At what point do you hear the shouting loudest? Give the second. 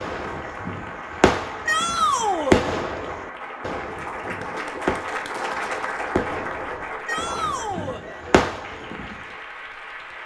2 s.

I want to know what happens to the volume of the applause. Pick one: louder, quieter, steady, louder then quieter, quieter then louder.
louder then quieter.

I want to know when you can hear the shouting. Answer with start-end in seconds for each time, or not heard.
1.6-2.6, 7.0-8.0.